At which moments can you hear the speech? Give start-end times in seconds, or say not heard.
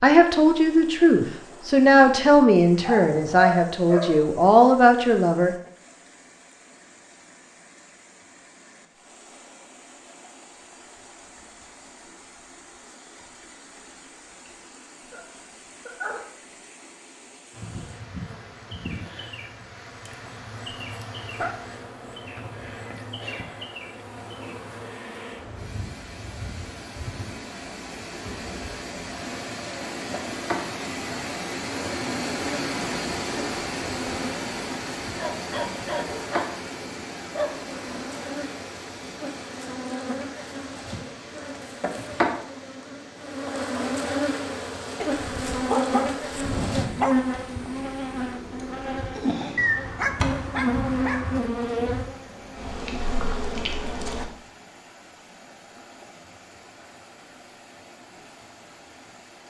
0.0-5.5.